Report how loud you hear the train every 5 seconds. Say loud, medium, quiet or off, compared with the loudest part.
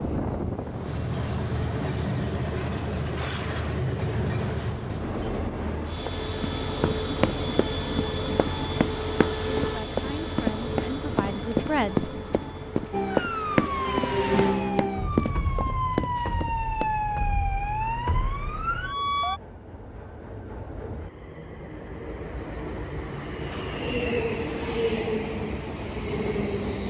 loud, loud, medium, quiet, loud, loud.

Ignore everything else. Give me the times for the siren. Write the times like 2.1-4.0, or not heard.
12.9-19.4.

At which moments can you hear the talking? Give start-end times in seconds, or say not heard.
9.6-12.1.